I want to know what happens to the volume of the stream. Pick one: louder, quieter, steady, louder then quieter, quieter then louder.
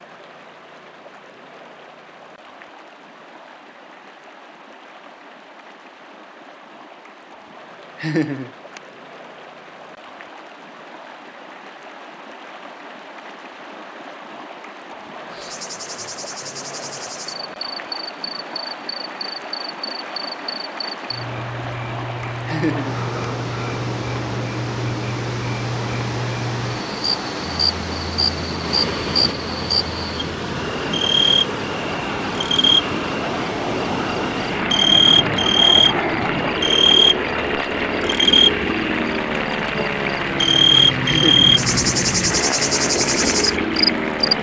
louder.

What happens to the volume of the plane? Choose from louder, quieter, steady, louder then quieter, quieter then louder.
louder.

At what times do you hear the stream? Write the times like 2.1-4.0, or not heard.
0.0-44.3.